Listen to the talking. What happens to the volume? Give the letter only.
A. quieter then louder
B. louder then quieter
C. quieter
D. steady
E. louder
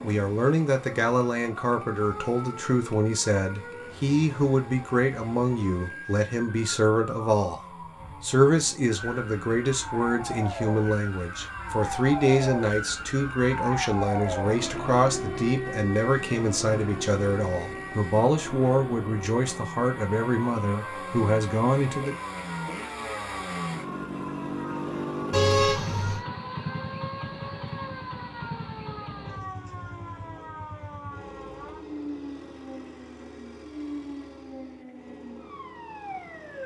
D.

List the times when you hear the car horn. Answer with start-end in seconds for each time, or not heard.
25.3-26.2.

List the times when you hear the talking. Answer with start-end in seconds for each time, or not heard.
0.0-7.6, 8.2-22.1.